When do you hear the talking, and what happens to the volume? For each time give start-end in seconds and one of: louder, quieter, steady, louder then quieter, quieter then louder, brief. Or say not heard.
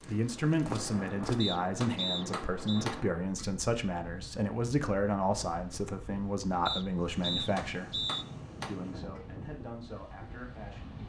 0.1-11.0 quieter.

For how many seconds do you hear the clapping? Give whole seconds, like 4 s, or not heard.
3 s.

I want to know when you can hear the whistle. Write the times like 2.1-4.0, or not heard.
1.4-2.9, 6.7-8.2.